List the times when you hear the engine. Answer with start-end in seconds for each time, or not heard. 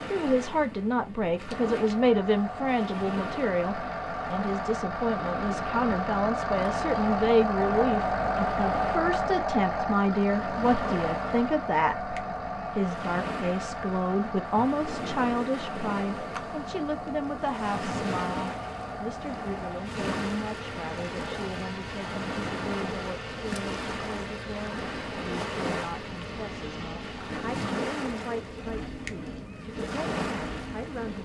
1.5-31.1.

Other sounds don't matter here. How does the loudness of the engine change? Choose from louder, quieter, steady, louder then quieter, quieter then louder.
quieter.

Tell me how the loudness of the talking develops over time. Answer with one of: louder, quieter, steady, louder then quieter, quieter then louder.
quieter.